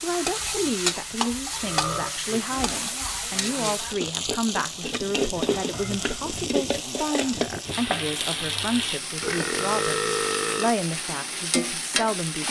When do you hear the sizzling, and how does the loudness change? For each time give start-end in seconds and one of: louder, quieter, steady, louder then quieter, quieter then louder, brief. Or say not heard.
0.0-12.4 steady.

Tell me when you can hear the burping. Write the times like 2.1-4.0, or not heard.
0.5-2.1, 5.7-6.5, 9.2-10.8.